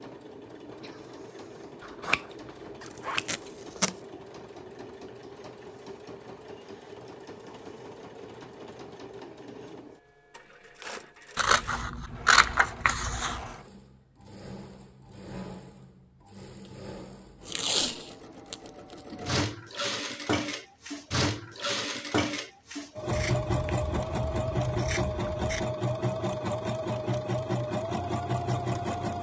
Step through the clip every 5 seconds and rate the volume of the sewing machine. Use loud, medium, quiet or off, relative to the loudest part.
quiet, quiet, quiet, medium, loud, loud.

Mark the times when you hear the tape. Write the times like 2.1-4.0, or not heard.
2.9-4.0, 17.4-18.9.